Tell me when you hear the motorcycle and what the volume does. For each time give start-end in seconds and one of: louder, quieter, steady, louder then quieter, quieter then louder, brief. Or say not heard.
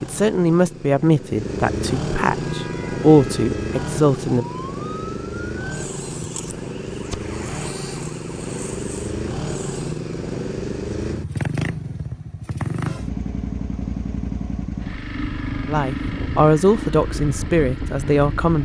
0.0-18.6 steady.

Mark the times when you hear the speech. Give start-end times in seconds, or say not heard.
0.0-4.5, 15.7-18.6.